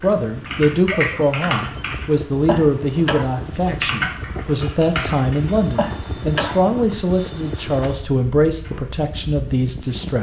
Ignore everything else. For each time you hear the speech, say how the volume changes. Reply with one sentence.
You can hear the speech from 0.0 to 10.1 s, at a steady volume.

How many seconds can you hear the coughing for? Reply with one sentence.
The coughing can be heard for 2 seconds in total.